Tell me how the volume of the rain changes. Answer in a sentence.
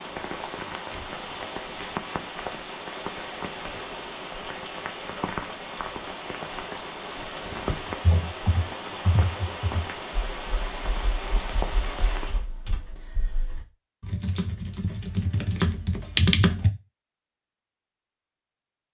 The loudness of the rain stays about the same.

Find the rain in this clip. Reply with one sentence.
The rain can be heard from 0.0 to 12.4 s.